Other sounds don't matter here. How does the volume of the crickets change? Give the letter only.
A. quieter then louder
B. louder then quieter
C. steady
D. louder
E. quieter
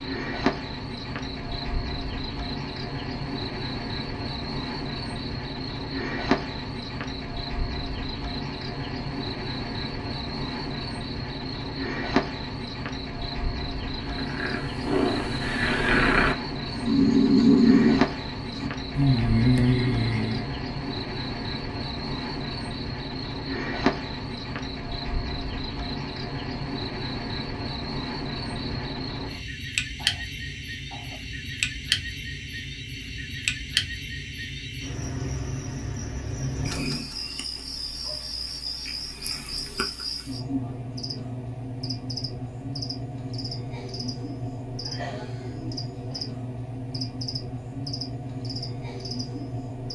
C.